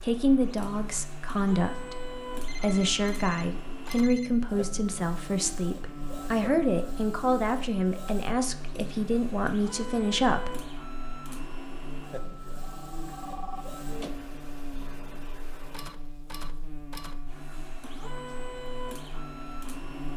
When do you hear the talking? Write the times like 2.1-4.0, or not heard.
0.0-10.6.